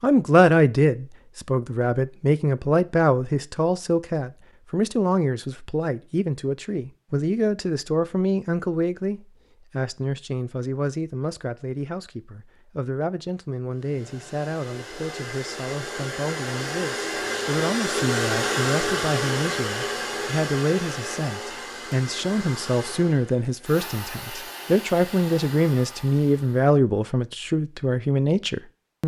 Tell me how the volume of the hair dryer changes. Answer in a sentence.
The loudness of the hair dryer goes up, then down.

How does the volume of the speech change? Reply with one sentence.
The loudness of the speech goes down, then up.